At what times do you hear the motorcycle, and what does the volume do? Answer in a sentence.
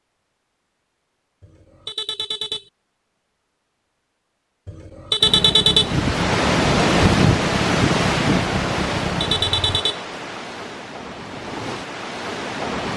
The motorcycle can be heard from 5.2 to 9.8 s, at a steady volume.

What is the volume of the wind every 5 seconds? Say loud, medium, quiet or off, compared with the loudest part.
off, loud, medium.